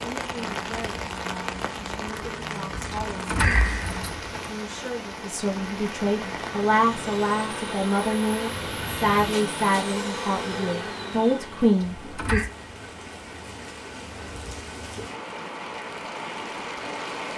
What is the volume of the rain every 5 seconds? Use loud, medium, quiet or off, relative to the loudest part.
loud, loud, medium, loud.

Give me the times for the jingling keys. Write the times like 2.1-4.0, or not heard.
2.9-4.5, 11.8-12.5.